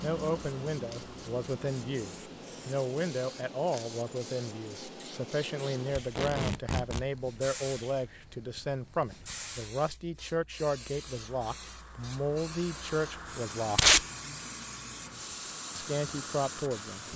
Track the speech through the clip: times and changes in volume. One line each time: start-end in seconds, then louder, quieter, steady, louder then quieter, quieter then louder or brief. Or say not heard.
0.0-13.9 steady
15.8-17.1 brief.